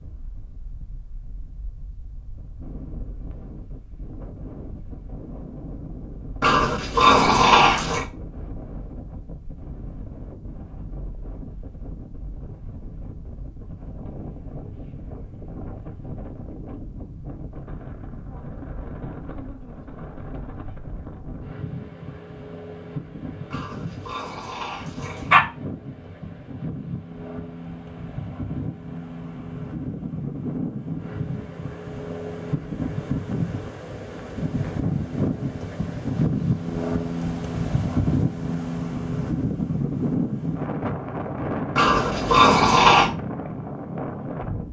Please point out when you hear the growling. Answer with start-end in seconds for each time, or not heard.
6.4-8.1, 23.5-25.4, 41.8-43.1.